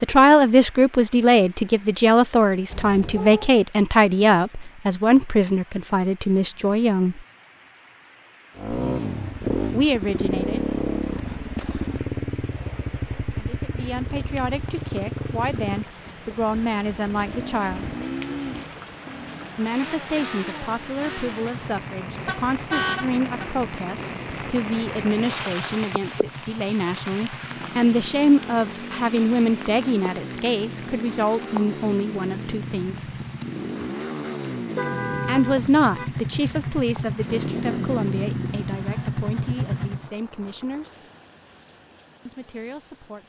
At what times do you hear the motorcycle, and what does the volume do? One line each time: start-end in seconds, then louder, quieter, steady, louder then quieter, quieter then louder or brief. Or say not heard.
8.6-40.1 quieter then louder.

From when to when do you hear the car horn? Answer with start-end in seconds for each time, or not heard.
2.7-3.5, 22.1-23.5, 34.8-36.1.